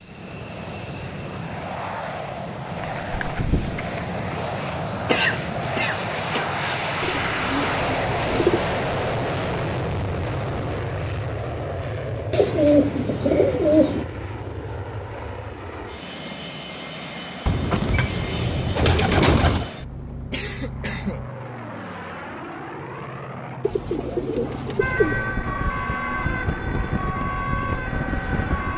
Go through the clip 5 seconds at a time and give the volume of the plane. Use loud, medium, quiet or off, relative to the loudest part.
medium, loud, medium, medium, medium, medium.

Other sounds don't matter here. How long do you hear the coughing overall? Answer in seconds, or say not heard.
3 s.